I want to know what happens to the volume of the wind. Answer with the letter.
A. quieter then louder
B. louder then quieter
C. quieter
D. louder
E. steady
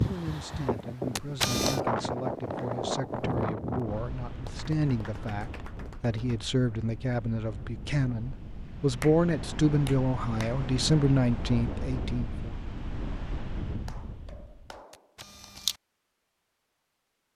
A.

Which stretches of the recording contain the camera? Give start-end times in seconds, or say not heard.
1.1-1.8, 14.9-15.8.